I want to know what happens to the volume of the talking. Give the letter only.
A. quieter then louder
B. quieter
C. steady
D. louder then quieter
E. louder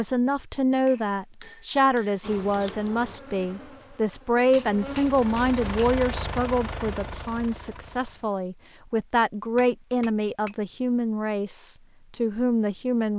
C.